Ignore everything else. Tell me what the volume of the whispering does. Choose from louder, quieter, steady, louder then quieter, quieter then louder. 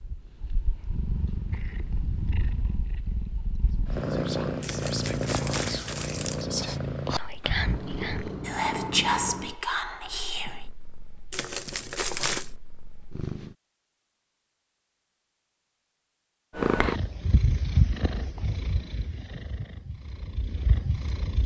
louder.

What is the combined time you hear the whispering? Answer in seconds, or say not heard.
7 s.